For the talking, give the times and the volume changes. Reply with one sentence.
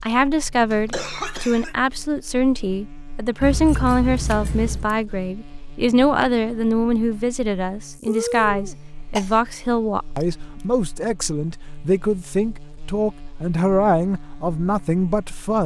The talking can be heard from 0.0 to 15.6 s, at a steady volume.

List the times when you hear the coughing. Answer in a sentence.
You can hear the coughing from 0.7 to 1.8 s and from 8.1 to 9.3 s.